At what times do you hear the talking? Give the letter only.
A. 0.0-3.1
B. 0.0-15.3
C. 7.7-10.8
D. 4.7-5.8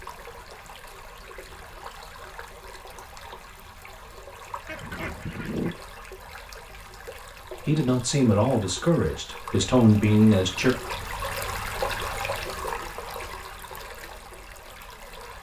C.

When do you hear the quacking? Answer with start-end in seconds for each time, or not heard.
4.7-5.8.